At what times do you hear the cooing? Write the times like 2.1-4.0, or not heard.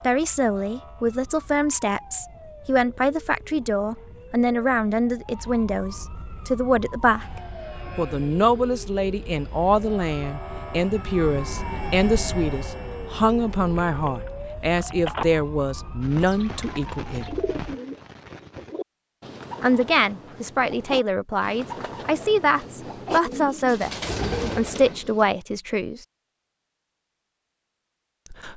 16.0-25.3.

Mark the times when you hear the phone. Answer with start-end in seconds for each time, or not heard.
13.8-15.2.